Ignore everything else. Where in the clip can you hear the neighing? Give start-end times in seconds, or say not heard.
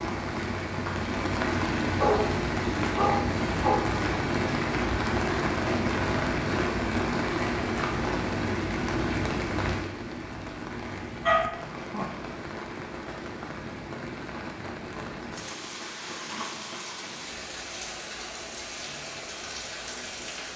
not heard.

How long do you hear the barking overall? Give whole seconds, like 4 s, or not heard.
3 s.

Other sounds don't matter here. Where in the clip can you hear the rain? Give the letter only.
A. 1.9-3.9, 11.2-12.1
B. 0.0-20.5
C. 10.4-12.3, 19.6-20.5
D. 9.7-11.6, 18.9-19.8
B.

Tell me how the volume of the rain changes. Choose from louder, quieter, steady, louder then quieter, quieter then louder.
quieter.